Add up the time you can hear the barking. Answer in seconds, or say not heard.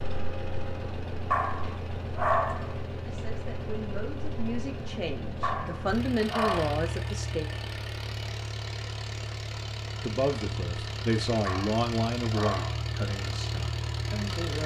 4 s.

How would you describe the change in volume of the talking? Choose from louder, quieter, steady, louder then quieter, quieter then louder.
louder then quieter.